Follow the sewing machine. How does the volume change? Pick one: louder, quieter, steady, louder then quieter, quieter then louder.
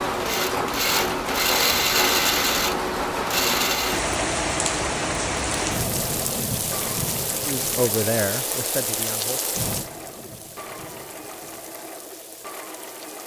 quieter.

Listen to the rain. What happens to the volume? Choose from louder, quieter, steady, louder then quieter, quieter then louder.
quieter.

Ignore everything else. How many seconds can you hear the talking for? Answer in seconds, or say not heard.
2 s.